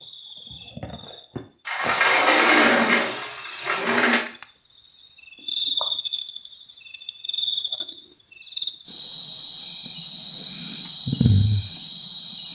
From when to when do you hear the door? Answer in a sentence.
You can hear the door from 1.6 to 4.2 s.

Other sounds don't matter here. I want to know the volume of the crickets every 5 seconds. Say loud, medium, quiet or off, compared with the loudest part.
quiet, loud, loud.